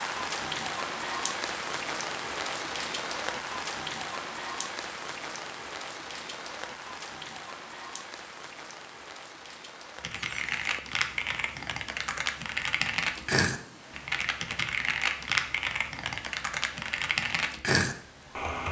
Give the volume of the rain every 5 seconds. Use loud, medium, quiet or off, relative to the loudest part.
loud, medium, quiet, quiet.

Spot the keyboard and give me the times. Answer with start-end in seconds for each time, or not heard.
10.0-18.6.